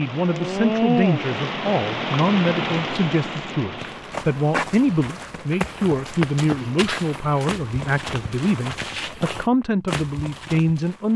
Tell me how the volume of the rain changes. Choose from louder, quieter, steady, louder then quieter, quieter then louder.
quieter.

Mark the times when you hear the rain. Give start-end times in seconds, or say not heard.
0.0-8.5.